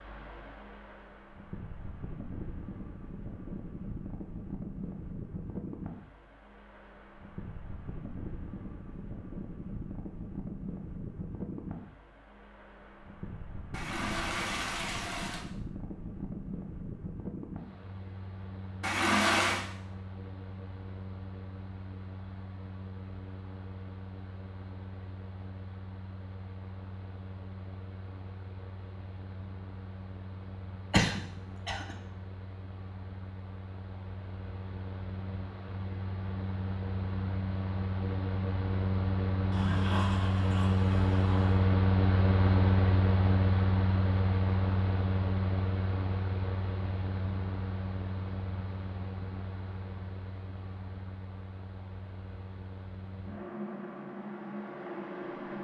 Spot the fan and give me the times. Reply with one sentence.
The fan can be heard from 0.0 to 55.5 s.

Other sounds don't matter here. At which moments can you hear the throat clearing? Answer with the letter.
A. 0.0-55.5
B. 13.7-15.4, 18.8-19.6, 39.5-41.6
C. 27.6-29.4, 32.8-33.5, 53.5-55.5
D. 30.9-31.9
D.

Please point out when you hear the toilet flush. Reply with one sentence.
The toilet flush can be heard from 13.7 to 15.4 s, from 18.8 to 19.6 s and from 39.5 to 41.6 s.